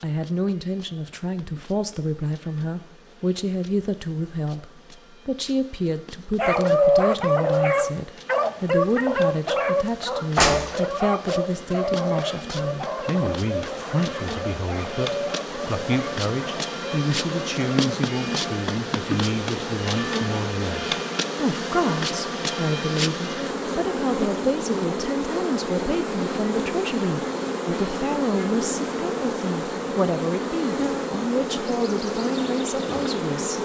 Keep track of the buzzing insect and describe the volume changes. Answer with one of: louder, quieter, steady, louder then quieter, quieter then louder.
louder.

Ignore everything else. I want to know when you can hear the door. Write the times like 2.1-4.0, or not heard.
10.3-10.8.